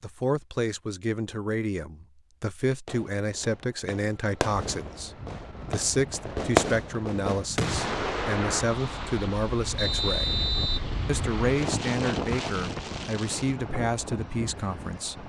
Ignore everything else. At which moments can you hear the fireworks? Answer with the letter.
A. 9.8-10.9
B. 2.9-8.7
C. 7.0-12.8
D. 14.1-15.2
B.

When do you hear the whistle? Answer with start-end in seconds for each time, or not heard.
9.8-10.9.